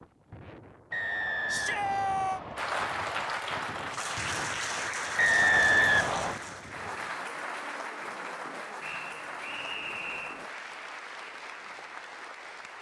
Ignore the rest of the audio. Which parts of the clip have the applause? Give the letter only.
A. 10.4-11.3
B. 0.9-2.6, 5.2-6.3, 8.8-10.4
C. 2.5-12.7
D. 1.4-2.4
C.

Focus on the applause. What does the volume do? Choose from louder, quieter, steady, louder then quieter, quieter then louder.
quieter.